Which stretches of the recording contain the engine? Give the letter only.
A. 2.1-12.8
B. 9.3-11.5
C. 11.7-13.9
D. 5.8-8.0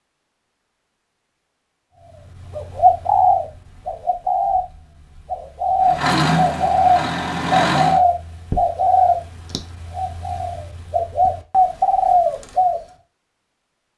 D.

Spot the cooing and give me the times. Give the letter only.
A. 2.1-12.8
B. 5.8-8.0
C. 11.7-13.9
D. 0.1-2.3
A.